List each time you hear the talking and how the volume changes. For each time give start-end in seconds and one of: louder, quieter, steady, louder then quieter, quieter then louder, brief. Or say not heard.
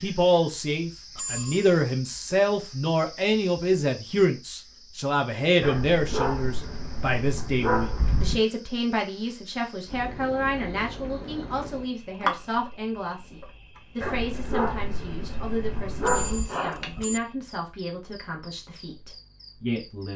0.0-20.1 quieter.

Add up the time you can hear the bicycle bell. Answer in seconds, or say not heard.
2 s.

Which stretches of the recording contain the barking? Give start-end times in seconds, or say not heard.
5.6-8.4, 14.0-16.5.